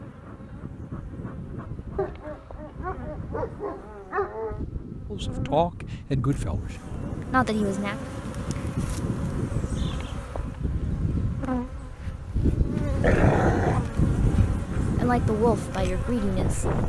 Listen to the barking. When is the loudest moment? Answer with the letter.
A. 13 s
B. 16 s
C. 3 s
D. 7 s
A.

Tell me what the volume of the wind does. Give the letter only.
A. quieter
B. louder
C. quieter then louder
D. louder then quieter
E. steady
B.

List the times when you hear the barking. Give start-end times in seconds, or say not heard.
1.9-4.7, 13.0-13.8.